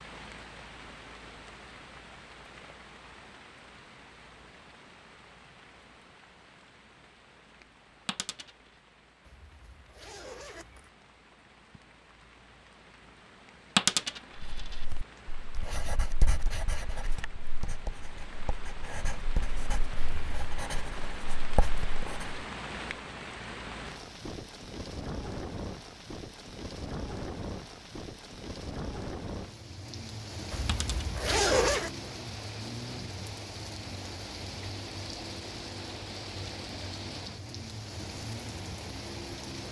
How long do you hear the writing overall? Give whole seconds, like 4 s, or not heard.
8 s.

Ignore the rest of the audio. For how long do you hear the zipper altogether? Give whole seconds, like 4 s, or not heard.
4 s.